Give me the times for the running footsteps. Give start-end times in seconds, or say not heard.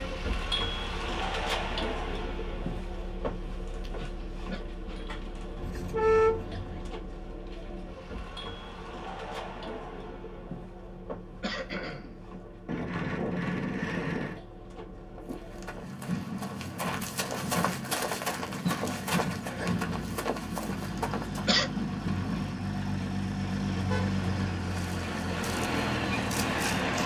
15.2-21.6.